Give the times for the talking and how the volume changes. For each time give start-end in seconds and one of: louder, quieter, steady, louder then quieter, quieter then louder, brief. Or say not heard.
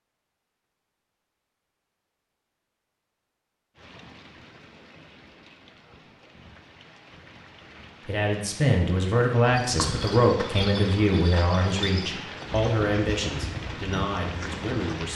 8.1-15.1 quieter.